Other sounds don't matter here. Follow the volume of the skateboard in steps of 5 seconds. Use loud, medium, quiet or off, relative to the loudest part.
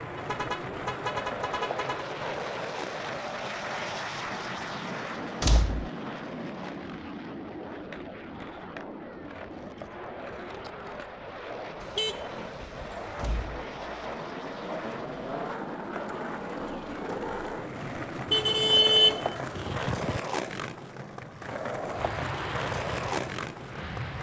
medium, medium, medium, loud, loud.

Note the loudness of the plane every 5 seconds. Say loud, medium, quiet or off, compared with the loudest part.
loud, loud, medium, medium, loud.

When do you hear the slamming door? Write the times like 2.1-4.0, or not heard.
5.4-5.9, 13.2-13.6.